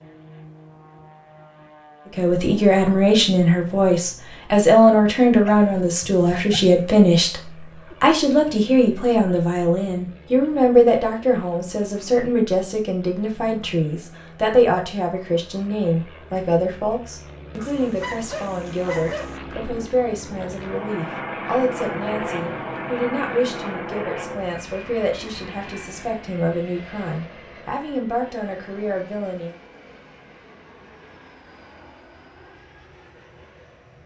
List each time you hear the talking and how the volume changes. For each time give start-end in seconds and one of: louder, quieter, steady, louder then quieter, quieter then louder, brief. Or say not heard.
2.1-29.6 quieter.